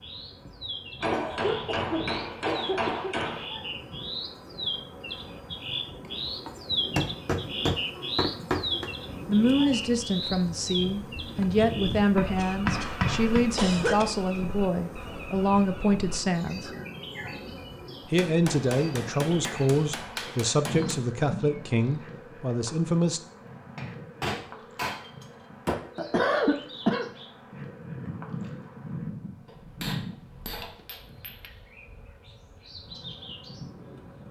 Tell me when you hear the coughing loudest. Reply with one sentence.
The volume of the coughing peaks at 26 seconds.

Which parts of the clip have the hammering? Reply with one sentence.
The hammering can be heard from 1.0 to 3.5 s, from 6.5 to 8.9 s, from 11.9 to 13.4 s, from 18.1 to 21.0 s, from 23.8 to 25.8 s and from 29.4 to 31.5 s.